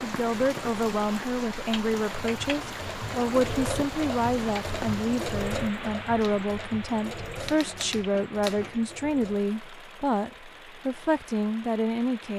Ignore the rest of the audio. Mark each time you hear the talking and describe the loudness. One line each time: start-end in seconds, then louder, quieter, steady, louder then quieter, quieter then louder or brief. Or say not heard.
0.0-12.3 steady.